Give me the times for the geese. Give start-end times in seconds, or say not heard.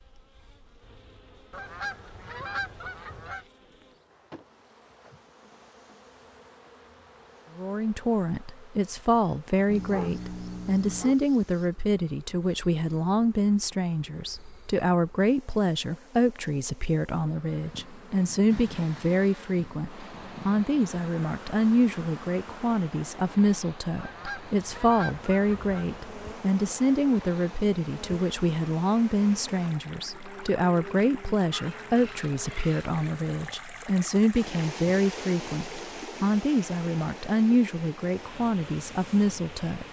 1.5-3.5, 23.9-25.9.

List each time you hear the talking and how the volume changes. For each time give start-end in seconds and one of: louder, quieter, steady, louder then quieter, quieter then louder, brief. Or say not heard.
7.5-39.8 steady.